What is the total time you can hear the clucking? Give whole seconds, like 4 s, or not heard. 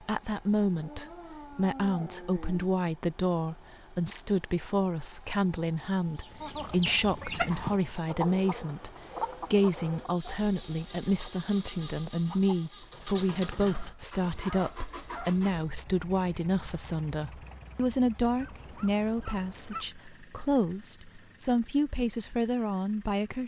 7 s.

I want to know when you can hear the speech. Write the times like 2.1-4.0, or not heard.
0.0-8.9, 9.5-23.4.